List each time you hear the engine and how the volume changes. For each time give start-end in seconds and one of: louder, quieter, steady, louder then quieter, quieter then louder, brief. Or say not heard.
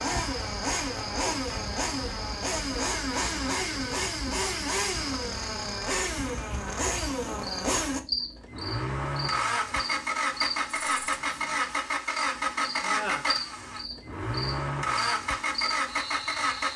0.0-16.7 steady.